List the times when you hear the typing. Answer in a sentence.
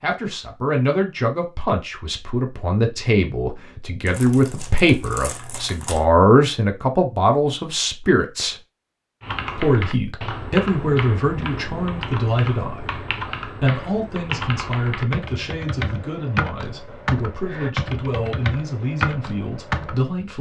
You can hear the typing from 9.2 to 20.1 s.